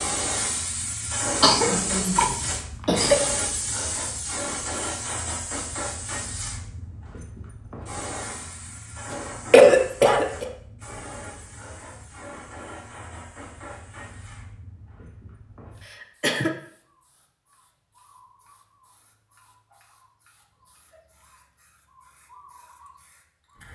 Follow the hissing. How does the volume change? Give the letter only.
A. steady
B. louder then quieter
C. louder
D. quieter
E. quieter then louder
D.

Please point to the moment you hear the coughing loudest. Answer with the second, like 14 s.
10 s.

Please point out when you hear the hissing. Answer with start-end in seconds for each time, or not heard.
0.0-23.7.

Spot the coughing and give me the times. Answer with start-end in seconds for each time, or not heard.
1.4-3.2, 9.5-10.4, 15.8-16.6.